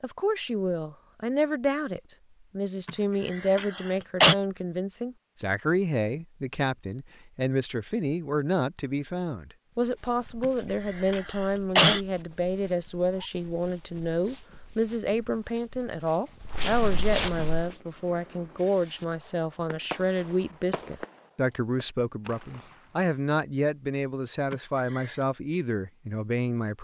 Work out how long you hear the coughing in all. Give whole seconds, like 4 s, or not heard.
4 s.